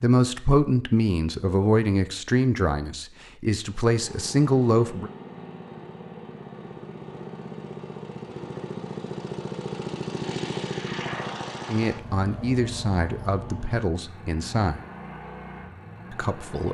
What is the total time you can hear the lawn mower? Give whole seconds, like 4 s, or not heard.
13 s.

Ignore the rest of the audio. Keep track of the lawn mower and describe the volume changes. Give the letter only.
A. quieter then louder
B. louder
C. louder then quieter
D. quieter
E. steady
C.